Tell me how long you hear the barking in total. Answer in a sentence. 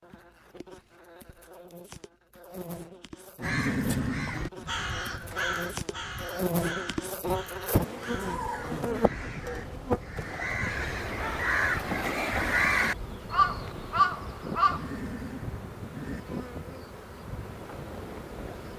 The barking can't be heard in this clip.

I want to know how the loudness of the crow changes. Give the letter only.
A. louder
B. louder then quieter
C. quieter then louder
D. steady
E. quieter
C.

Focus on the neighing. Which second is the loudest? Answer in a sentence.
The volume of the neighing peaks at 4 seconds.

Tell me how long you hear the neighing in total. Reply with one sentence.
You can hear the neighing for 5 seconds altogether.